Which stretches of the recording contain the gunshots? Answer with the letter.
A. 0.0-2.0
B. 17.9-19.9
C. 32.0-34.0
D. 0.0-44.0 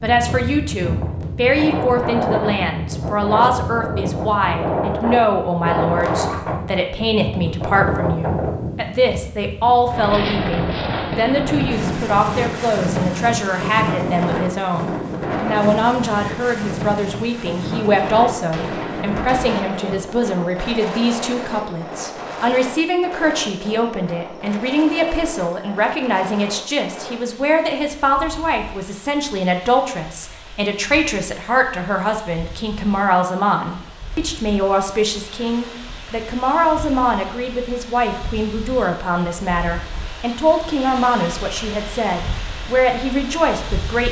B.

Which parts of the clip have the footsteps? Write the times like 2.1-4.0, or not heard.
not heard.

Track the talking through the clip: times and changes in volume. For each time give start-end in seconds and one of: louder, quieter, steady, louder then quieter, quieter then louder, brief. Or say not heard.
0.0-44.0 steady.